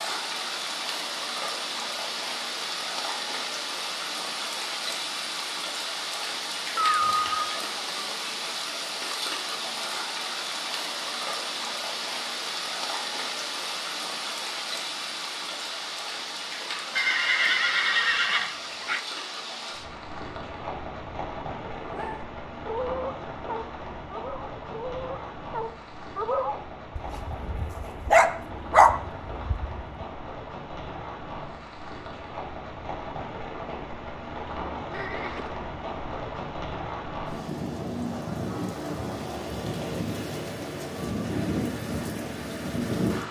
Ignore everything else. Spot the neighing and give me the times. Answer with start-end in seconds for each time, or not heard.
6.8-7.6, 16.9-19.0, 34.9-35.5.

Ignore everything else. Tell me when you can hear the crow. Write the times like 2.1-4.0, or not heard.
not heard.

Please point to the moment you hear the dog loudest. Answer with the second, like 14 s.
29 s.